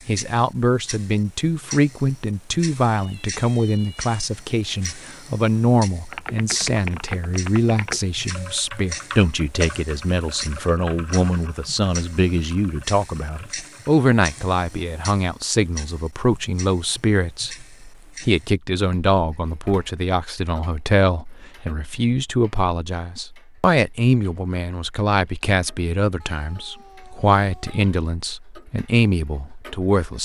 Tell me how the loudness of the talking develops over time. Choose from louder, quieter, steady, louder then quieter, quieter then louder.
steady.